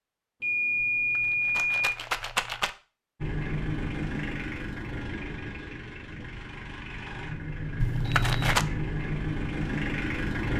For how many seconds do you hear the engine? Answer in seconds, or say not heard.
7 s.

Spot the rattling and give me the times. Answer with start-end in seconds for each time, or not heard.
0.8-2.7, 7.8-8.7.